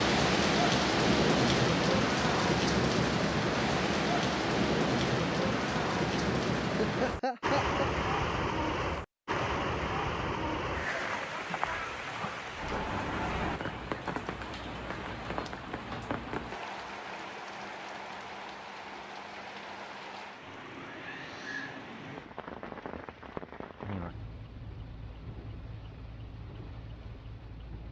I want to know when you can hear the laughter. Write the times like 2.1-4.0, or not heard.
6.8-7.9.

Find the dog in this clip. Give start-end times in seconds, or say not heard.
not heard.